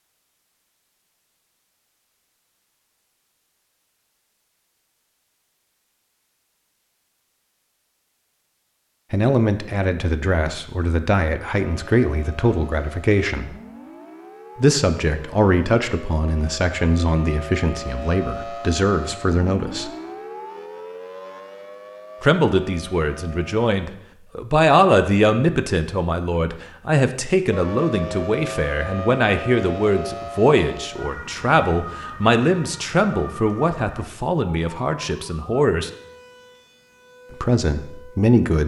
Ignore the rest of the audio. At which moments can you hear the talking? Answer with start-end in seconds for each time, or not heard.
9.1-13.6, 14.6-19.9, 22.2-35.9, 37.3-38.6.